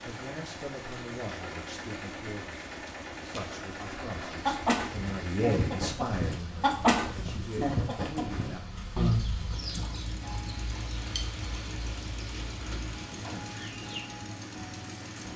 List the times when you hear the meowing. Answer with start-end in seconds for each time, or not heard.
not heard.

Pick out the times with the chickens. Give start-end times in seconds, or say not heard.
3.4-14.1.